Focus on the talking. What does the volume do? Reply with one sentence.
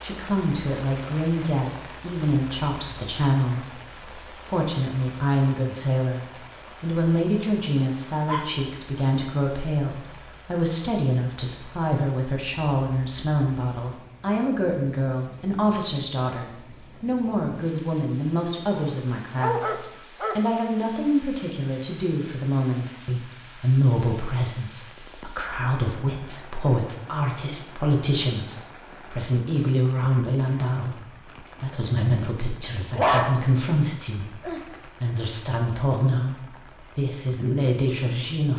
The loudness of the talking stays about the same.